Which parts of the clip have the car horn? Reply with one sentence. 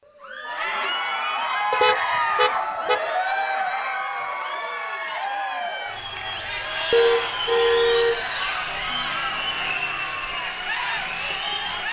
The car horn can be heard from 1.7 to 3.1 s and from 6.9 to 8.2 s.